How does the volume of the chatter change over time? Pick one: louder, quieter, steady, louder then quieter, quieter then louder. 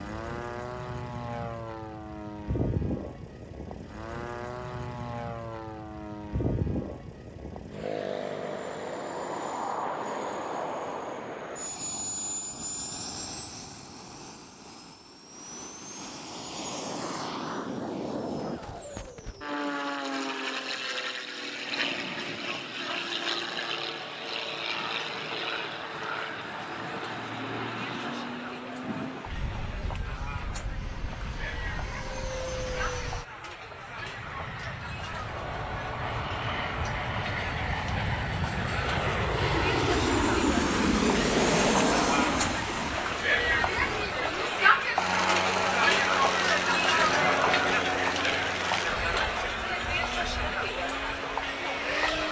louder.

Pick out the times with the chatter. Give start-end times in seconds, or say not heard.
22.1-52.2.